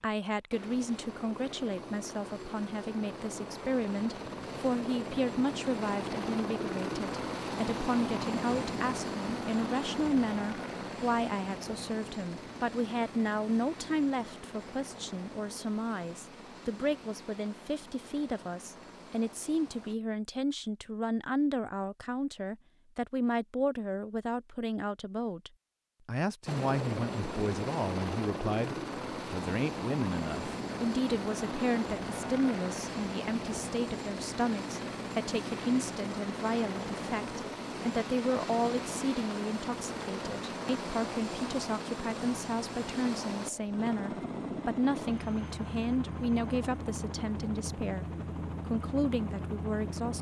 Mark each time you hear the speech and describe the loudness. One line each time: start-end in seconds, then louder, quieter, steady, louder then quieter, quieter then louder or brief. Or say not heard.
0.0-48.0 steady
48.6-50.1 brief.